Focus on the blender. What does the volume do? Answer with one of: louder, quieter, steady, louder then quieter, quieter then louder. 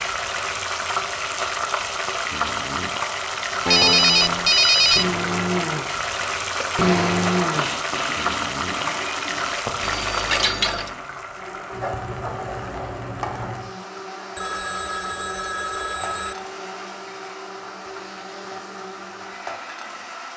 quieter.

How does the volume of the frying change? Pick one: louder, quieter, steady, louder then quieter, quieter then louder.
quieter.